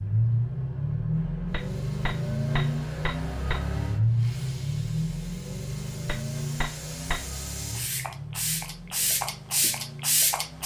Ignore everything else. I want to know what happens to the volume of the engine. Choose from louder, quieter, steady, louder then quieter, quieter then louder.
quieter.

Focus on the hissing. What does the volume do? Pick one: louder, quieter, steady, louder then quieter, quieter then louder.
louder.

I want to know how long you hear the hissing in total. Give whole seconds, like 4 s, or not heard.
9 s.